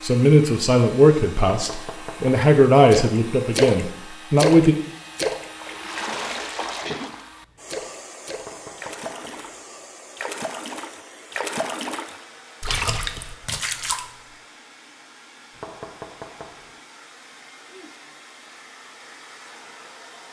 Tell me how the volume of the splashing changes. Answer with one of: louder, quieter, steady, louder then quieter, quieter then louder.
quieter then louder.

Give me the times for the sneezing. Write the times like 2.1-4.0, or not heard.
6.5-7.2.